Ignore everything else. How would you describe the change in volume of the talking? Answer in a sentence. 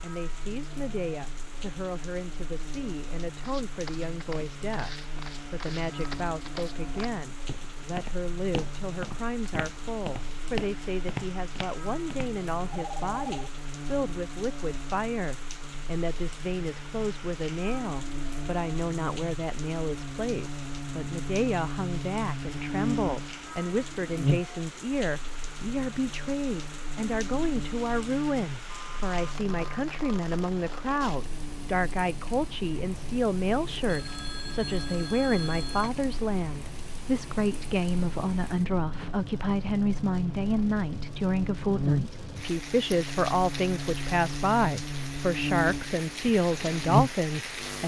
The loudness of the talking goes up.